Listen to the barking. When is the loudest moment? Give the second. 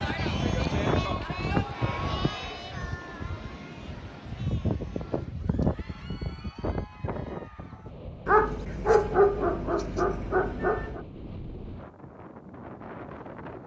9 s.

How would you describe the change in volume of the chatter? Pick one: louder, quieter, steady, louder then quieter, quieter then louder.
quieter.